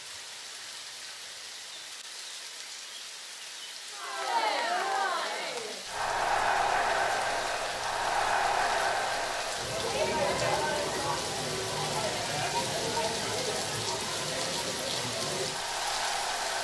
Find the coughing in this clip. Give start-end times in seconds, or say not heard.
not heard.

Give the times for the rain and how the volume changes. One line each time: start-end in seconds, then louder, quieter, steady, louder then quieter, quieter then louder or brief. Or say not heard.
0.0-16.5 louder.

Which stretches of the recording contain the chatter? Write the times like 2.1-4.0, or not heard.
3.9-16.5.